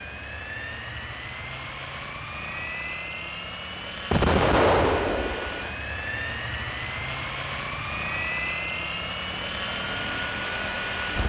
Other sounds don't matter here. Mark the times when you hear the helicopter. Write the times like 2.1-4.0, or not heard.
0.0-11.2.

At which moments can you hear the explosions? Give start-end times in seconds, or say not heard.
4.1-5.7.